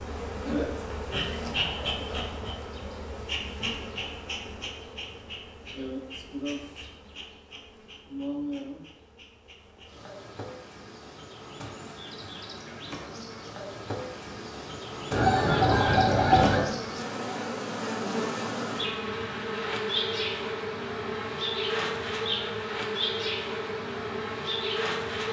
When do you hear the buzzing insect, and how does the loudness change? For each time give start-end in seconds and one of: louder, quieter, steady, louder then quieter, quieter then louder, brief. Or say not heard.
0.0-25.2 quieter then louder.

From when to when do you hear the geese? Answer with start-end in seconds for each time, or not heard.
15.1-16.6.